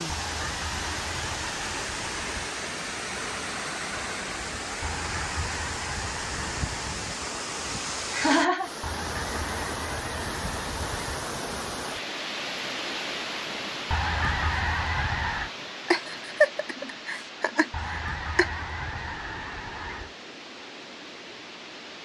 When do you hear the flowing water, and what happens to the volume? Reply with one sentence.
You can hear the flowing water from 0.0 to 22.0 s, getting quieter.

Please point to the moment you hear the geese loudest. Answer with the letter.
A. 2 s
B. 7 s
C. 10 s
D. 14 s
D.